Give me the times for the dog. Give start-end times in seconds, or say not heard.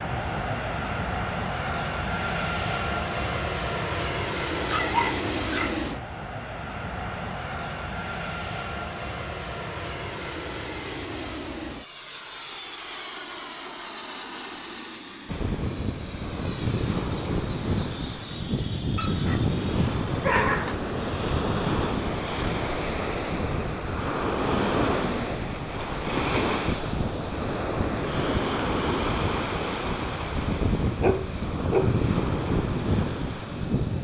4.5-5.8, 18.9-20.8, 30.5-32.0.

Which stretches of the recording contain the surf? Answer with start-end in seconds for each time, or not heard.
15.2-33.9.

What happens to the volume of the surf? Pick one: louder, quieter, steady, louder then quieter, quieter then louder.
steady.